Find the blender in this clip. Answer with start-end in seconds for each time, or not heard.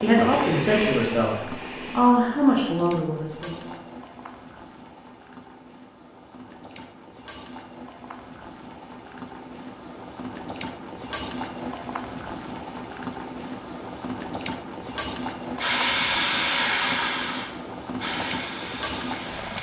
0.1-2.2, 15.6-19.5.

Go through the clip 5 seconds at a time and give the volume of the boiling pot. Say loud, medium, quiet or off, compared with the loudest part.
medium, medium, loud, loud.